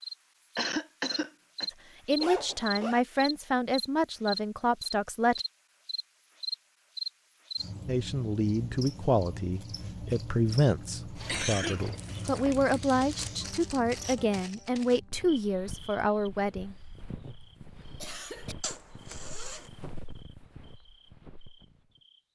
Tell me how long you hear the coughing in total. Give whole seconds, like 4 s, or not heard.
5 s.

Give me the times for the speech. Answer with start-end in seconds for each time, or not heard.
2.0-5.5, 7.8-16.8.